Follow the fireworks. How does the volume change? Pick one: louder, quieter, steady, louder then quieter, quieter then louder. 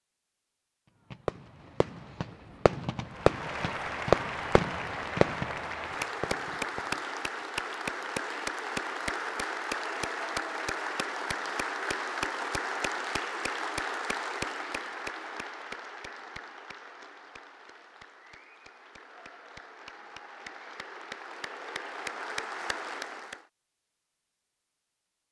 louder then quieter.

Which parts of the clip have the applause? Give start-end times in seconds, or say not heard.
3.0-23.4.